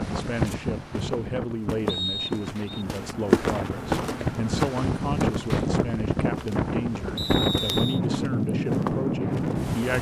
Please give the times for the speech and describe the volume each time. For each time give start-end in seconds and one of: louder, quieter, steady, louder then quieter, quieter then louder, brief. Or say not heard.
0.0-9.9 steady.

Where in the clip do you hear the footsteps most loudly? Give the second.
3 s.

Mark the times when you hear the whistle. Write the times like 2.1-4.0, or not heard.
1.9-2.9, 7.2-8.0.